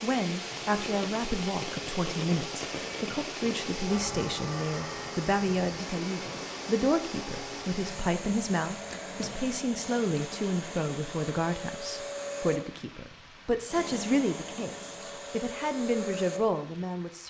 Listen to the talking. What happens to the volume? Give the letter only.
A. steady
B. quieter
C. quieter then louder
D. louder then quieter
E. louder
A.